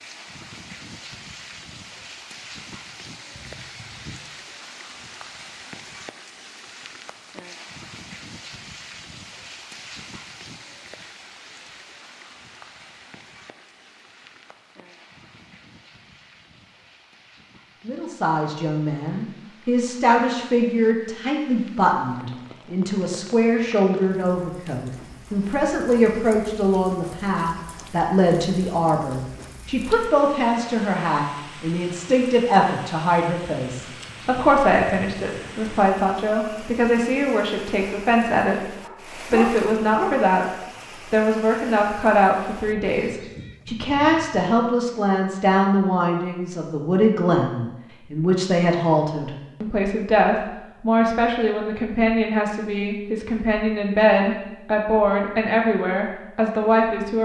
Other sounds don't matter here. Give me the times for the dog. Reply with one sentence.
The dog can be heard from 38.8 to 40.2 s.